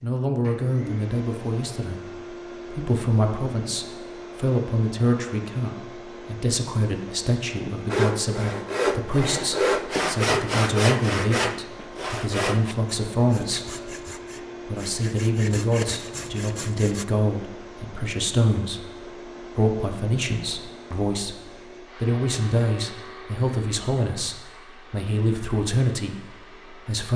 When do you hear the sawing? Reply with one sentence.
The sawing can be heard from 7.8 to 17.1 s.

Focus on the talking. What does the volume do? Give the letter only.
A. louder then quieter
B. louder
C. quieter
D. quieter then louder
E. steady
E.